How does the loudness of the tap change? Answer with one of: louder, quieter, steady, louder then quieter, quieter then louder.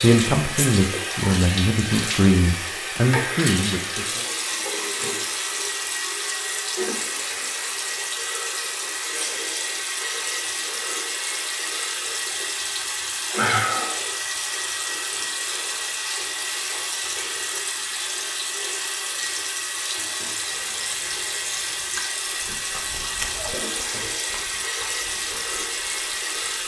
steady.